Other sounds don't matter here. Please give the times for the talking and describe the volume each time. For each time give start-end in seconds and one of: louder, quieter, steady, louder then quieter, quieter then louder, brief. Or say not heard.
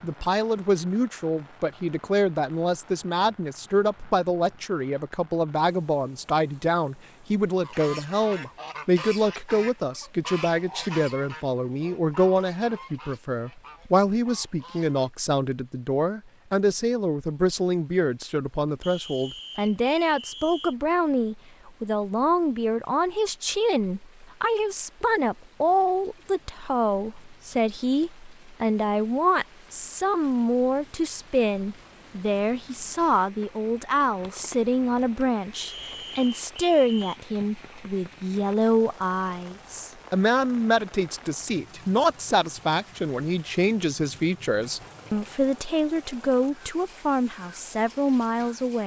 0.0-48.8 steady.